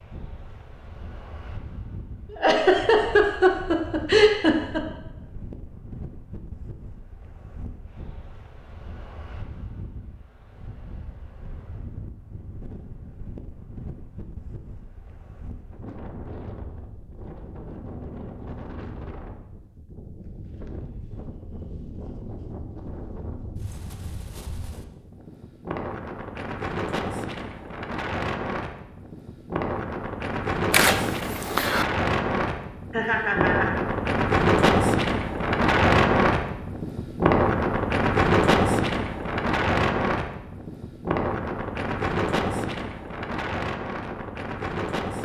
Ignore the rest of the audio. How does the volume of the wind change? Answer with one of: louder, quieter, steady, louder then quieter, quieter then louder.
louder.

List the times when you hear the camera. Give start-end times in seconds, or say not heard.
30.7-31.9.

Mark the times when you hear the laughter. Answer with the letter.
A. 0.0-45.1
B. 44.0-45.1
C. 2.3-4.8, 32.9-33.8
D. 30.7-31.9
C.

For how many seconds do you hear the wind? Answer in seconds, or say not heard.
45 s.